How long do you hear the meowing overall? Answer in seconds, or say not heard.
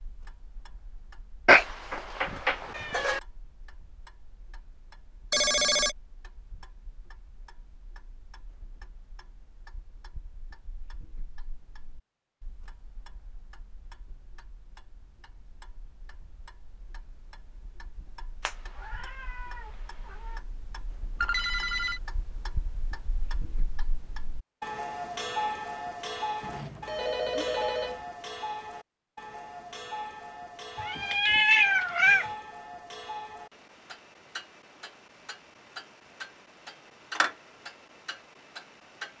4 s.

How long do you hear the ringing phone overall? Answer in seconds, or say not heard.
3 s.